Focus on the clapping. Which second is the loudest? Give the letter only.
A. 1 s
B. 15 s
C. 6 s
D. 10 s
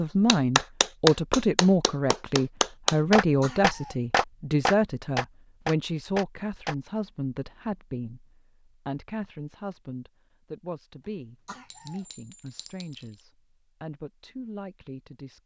A.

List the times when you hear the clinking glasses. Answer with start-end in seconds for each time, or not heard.
11.7-13.2.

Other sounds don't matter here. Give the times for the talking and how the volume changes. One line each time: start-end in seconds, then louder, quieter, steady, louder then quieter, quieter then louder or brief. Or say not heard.
0.0-15.4 quieter.